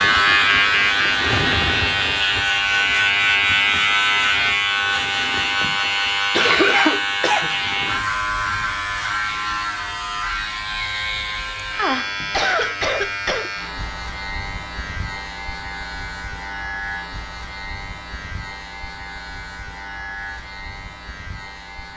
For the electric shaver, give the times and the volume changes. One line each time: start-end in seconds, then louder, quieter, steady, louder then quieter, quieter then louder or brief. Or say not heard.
0.0-21.9 quieter.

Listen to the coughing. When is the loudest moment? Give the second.
7 s.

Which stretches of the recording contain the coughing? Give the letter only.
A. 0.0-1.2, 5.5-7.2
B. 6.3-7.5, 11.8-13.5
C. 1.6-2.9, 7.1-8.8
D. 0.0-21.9
B.